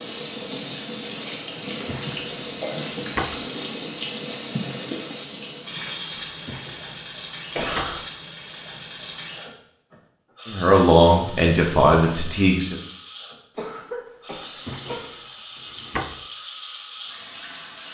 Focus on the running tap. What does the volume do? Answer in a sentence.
The loudness of the running tap goes down.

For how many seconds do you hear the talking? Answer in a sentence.
The talking can be heard for 2 seconds in total.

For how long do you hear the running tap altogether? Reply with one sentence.
You can hear the running tap for 18 seconds altogether.